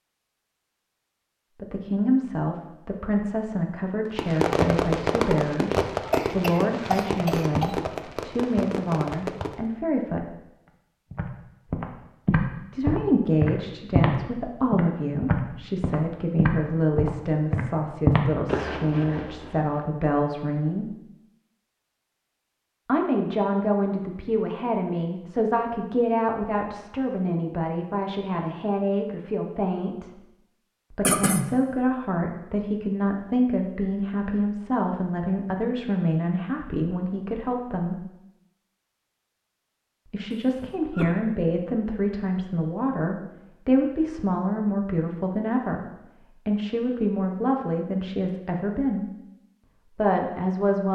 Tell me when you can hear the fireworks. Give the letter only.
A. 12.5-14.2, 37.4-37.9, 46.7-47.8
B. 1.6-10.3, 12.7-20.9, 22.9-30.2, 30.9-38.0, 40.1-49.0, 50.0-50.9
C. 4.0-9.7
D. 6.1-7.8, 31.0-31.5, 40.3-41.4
C.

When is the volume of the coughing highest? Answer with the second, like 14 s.
31 s.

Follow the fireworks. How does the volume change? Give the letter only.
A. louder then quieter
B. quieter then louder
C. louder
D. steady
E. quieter
E.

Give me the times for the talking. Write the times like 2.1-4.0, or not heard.
1.6-10.3, 12.7-20.9, 22.9-30.2, 30.9-38.0, 40.1-49.0, 50.0-50.9.